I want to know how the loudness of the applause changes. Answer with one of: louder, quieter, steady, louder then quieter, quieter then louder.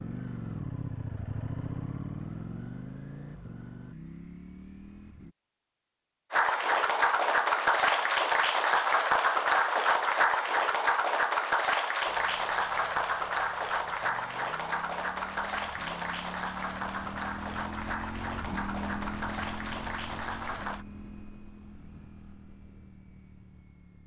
quieter.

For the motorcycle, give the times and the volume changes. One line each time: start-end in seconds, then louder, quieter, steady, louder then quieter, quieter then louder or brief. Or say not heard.
0.0-5.3 quieter
12.1-24.0 louder then quieter.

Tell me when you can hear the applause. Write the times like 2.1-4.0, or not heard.
6.3-20.9.